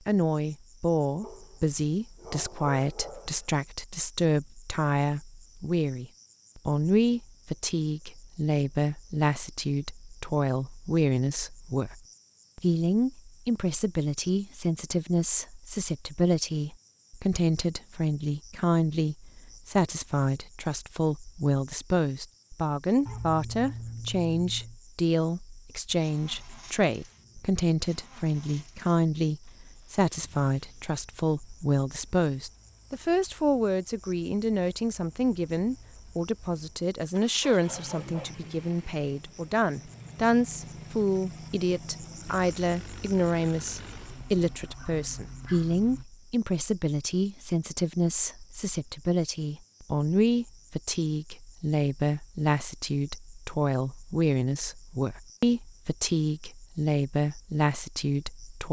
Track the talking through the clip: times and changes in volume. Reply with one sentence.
The talking can be heard from 0.1 to 58.6 s, at a steady volume.